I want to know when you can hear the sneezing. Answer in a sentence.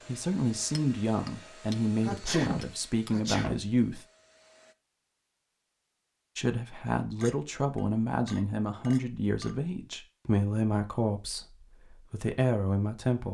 The sneezing can be heard from 2.0 to 3.6 s.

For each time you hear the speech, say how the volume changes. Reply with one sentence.
The speech can be heard from 0.1 to 4.0 s, at a steady volume; and from 6.3 to 13.2 s, at a steady volume.